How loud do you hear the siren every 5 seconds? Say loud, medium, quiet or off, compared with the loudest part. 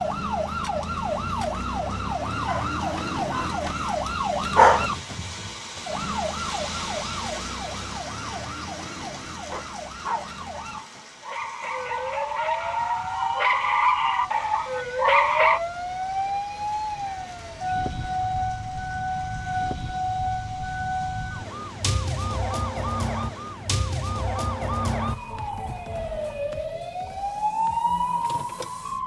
loud, medium, medium, loud, loud, loud.